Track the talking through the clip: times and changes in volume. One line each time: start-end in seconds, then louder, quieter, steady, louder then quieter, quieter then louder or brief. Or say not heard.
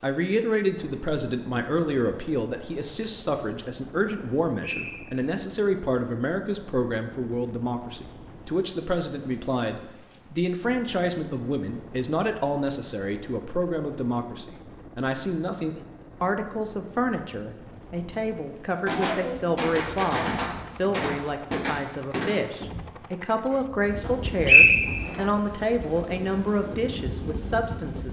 0.0-28.0 steady.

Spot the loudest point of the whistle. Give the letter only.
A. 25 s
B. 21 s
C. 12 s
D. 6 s
A.